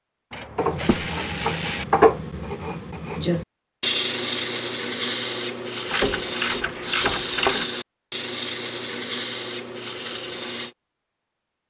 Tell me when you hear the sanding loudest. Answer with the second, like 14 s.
2 s.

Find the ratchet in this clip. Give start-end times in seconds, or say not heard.
0.3-1.9, 5.8-7.7.